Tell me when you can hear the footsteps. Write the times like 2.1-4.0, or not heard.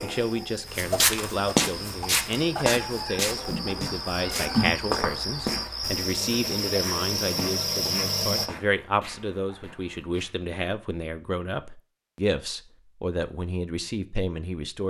0.8-10.3.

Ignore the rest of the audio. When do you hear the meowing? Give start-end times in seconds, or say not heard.
2.9-4.7.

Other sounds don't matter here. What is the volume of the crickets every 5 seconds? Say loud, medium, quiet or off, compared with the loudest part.
medium, loud, off.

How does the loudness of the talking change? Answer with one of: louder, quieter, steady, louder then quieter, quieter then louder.
steady.